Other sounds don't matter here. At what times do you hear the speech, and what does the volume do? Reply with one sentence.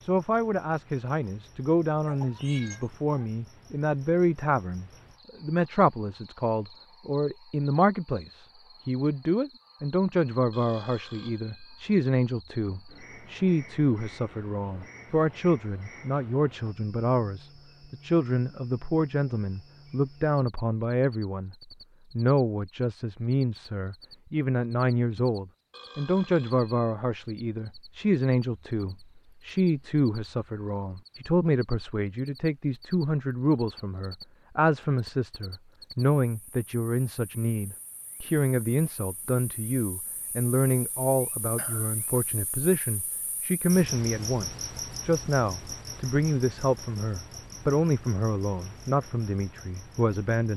The speech can be heard from 0.0 to 50.5 s, at a steady volume.